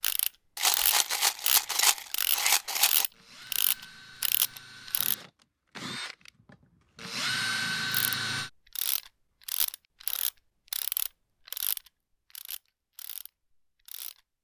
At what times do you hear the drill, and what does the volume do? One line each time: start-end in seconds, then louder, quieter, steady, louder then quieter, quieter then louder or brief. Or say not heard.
3.1-8.5 louder.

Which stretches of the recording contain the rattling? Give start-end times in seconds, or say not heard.
0.6-3.0.